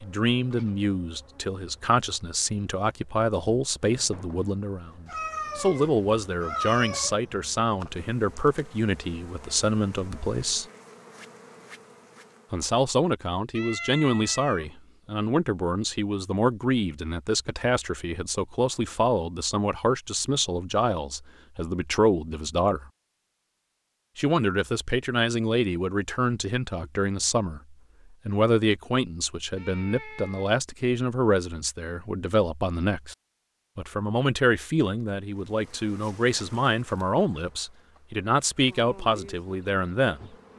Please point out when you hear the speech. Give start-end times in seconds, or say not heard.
0.0-10.7, 12.5-22.9, 24.1-33.1, 33.8-40.3.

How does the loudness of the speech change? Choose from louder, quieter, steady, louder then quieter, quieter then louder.
steady.